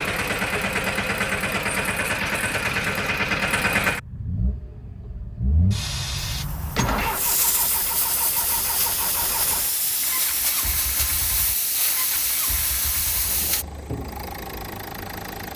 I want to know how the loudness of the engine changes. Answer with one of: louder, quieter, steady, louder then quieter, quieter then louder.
quieter.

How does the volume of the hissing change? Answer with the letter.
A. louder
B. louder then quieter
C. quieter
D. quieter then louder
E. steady
E.